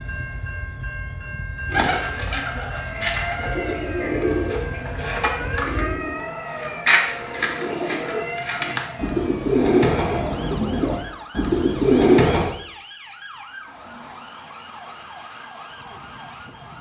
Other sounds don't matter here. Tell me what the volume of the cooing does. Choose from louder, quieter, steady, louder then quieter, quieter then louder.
louder.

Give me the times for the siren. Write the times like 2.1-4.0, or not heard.
2.8-16.7.